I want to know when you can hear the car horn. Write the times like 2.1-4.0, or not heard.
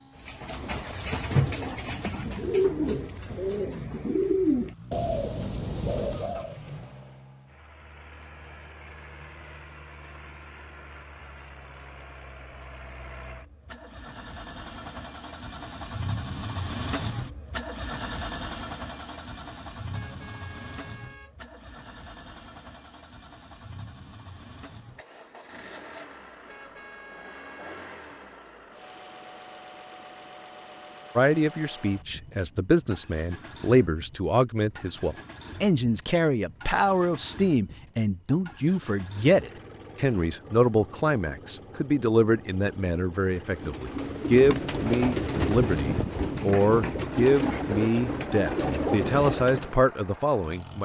19.9-21.4, 26.4-27.9.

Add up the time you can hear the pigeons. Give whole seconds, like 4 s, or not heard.
13 s.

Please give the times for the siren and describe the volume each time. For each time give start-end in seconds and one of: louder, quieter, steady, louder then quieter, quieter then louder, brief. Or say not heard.
not heard.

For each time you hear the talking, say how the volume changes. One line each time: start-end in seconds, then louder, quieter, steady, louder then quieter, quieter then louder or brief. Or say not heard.
31.1-50.8 steady.